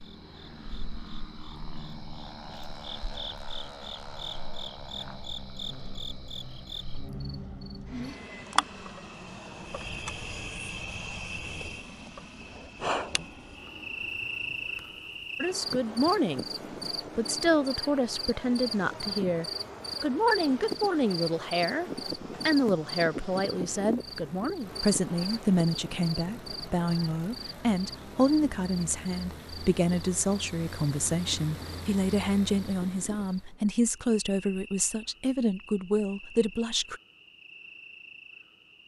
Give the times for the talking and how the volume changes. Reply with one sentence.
The talking can be heard briefly from 15.4 to 16.4 s; and from 17.1 to 37.0 s, at a steady volume.